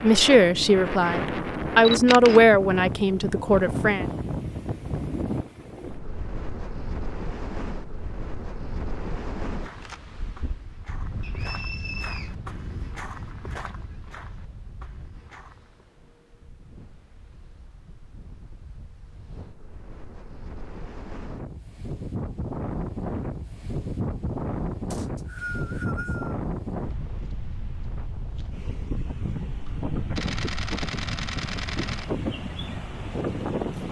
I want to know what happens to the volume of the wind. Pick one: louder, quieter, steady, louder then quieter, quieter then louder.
quieter then louder.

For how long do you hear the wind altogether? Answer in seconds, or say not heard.
34 s.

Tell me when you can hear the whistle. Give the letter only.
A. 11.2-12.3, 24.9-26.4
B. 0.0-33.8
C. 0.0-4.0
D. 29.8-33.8
A.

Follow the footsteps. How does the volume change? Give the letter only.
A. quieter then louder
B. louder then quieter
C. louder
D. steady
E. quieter
B.